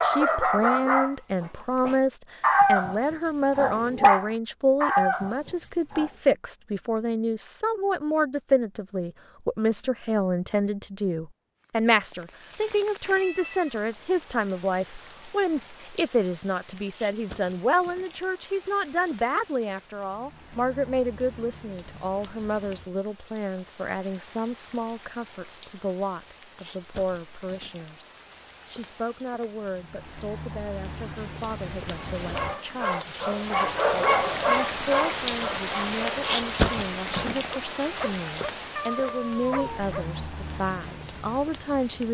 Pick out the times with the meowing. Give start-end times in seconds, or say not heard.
13.1-13.8, 38.8-39.9.